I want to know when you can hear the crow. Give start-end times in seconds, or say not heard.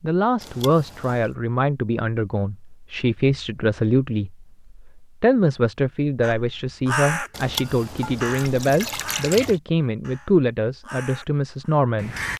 6.2-12.3.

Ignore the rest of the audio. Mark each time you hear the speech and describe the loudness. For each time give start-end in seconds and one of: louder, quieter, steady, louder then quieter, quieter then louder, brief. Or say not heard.
0.0-12.2 steady.